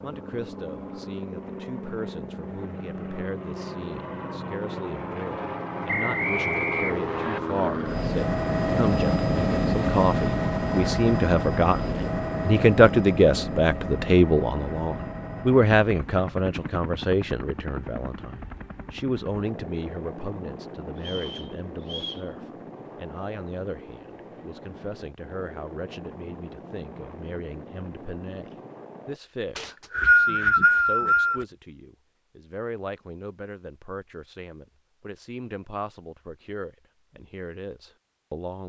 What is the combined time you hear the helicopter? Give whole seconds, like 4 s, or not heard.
29 s.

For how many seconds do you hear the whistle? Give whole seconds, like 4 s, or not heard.
5 s.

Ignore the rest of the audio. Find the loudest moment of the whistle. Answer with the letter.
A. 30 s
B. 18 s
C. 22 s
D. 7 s
A.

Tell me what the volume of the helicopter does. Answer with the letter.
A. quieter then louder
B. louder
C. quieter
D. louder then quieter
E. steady
D.